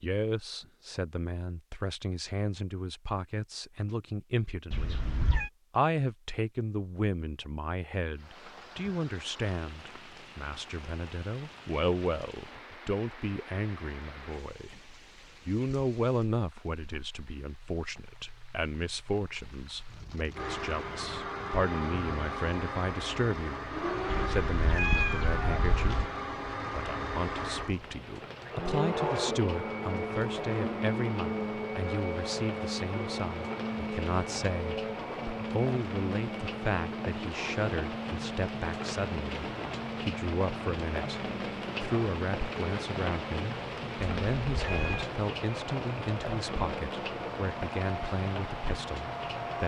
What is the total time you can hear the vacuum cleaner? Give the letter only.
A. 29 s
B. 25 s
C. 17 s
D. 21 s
A.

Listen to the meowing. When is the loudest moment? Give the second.
25 s.